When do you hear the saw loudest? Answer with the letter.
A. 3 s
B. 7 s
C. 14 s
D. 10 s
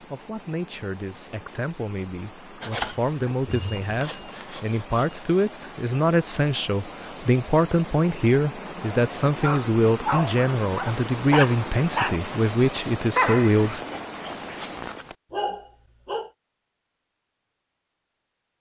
A.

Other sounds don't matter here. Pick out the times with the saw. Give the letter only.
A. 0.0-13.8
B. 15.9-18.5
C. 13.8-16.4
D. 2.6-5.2
D.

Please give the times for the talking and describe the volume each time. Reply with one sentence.
The talking can be heard from 0.0 to 13.8 s, getting louder.